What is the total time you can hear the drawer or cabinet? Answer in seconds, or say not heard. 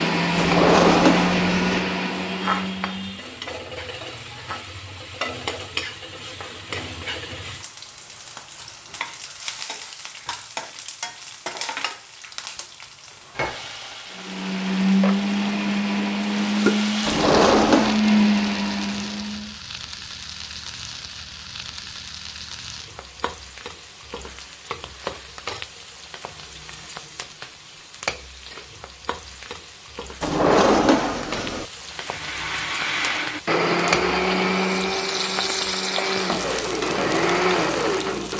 4 s.